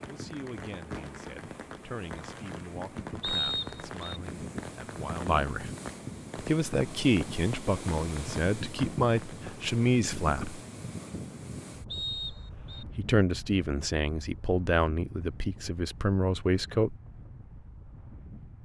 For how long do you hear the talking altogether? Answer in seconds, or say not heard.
14 s.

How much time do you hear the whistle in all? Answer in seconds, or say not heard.
2 s.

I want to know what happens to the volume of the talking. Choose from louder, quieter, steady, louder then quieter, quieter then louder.
louder.